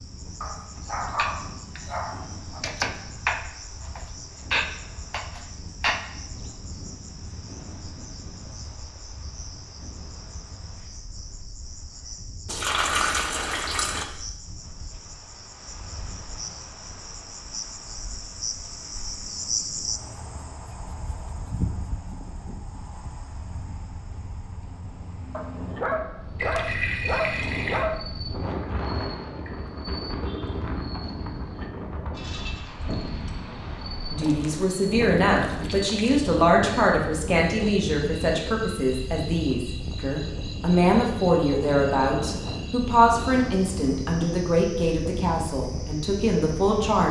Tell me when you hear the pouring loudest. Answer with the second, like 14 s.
13 s.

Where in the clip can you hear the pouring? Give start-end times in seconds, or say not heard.
12.4-14.1, 26.4-27.9, 34.2-36.2.